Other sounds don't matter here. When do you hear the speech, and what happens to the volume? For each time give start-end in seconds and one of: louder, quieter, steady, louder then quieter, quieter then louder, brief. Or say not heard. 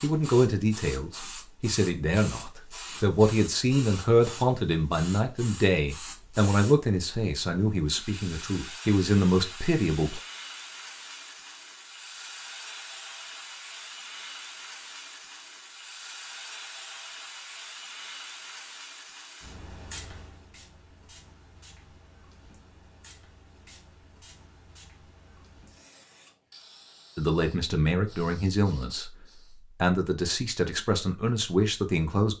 0.0-10.2 steady
27.1-29.1 brief
29.8-32.3 brief.